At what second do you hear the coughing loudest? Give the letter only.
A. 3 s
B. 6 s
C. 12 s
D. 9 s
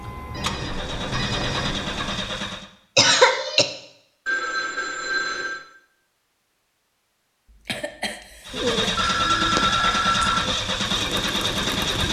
A.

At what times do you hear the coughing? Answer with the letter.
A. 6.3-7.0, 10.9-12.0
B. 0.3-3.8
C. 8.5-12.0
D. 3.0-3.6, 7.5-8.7
D.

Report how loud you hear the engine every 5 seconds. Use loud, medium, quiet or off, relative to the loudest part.
medium, loud, loud.